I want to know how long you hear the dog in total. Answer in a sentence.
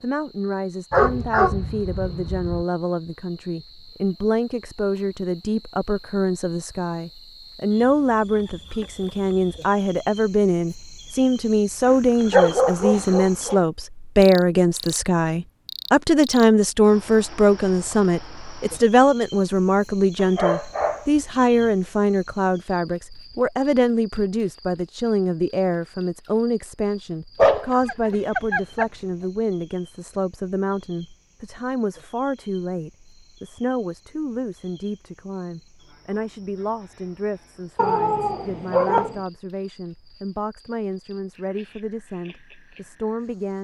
The dog can be heard for 8 seconds in total.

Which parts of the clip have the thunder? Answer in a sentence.
You can't hear the thunder here.